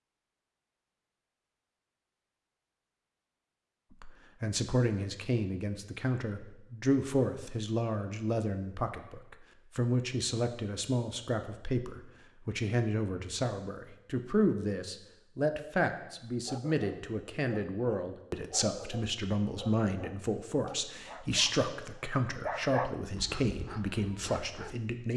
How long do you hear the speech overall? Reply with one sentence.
You can hear the speech for 21 seconds altogether.